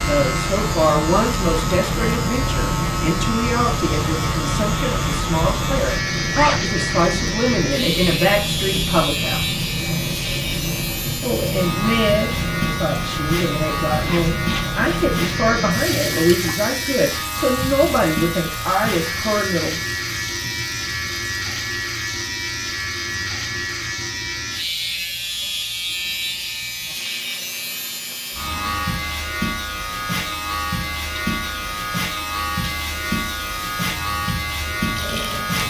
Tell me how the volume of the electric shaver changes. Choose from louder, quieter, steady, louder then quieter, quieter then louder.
steady.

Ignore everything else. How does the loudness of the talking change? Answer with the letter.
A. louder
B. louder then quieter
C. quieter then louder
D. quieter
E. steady
E.